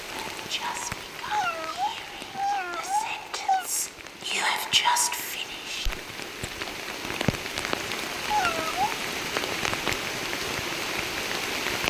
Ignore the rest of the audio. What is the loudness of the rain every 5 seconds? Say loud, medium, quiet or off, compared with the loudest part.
medium, loud, loud.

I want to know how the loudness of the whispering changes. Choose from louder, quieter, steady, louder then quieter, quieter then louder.
quieter then louder.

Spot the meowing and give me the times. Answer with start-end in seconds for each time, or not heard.
1.3-3.6, 8.2-8.9.